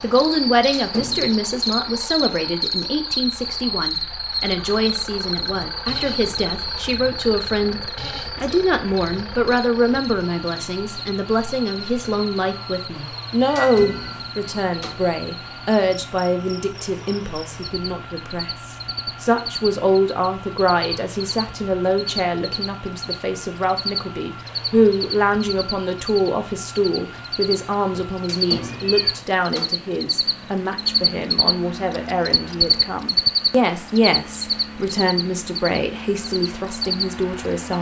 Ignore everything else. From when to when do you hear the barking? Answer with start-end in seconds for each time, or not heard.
not heard.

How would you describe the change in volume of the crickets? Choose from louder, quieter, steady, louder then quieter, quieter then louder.
quieter then louder.